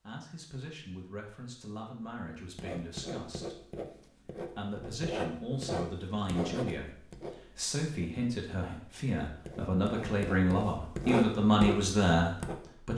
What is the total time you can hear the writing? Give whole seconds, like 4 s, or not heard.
10 s.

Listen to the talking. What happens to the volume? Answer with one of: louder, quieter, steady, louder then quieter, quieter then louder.
louder.